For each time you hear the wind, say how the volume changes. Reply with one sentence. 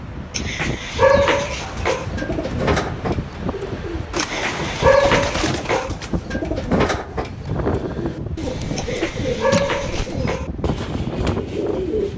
The wind can be heard from 0.0 to 12.1 s, at a steady volume.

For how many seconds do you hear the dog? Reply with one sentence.
You can hear the dog for 5 seconds altogether.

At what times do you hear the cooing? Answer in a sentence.
You can hear the cooing from 1.6 to 12.1 s.